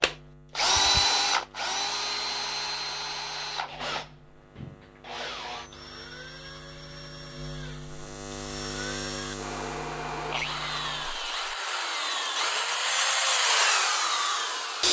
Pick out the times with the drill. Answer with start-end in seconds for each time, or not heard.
0.0-14.8.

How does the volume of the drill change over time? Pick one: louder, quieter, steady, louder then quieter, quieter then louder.
quieter then louder.